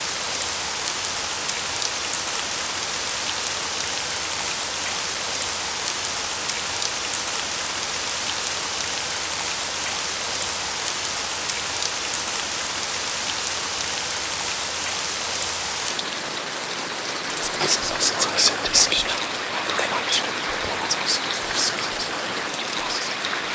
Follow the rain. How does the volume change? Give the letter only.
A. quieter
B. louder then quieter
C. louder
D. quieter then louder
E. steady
E.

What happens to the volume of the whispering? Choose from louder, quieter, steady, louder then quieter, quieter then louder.
quieter.